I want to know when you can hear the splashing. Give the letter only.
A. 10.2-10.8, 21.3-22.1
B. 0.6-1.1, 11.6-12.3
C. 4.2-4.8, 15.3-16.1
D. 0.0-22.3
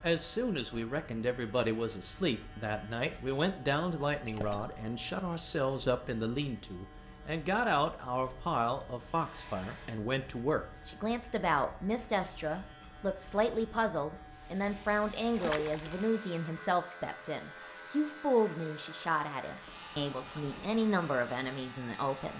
C.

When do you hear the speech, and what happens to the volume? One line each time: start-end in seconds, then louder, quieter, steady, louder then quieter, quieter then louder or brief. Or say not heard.
0.0-22.3 steady.